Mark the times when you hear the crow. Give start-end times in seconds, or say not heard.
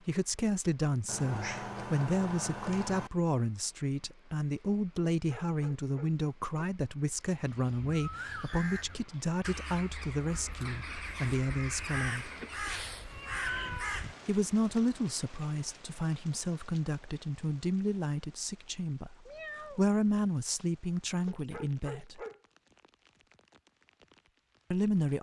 7.5-14.2.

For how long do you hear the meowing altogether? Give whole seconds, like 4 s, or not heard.
4 s.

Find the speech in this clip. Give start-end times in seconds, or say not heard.
0.1-12.3, 14.2-22.2, 24.7-25.1.